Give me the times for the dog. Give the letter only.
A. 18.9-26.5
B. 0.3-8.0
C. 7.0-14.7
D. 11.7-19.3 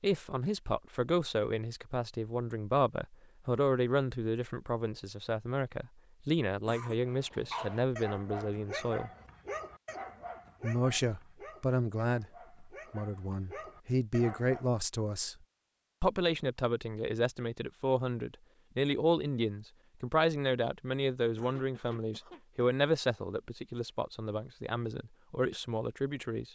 C.